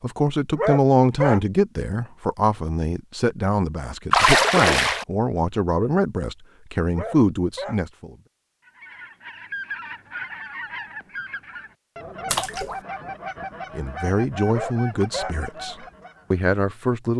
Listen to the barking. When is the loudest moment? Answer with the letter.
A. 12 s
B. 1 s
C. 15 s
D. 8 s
B.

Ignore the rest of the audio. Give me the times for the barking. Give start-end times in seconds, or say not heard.
0.5-1.4, 6.9-7.8, 14.4-15.3.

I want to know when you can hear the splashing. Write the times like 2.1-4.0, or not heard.
4.1-5.0, 12.3-12.8.